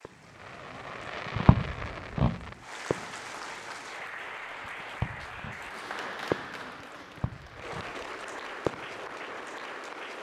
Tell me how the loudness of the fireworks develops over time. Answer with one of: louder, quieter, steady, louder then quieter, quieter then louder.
quieter then louder.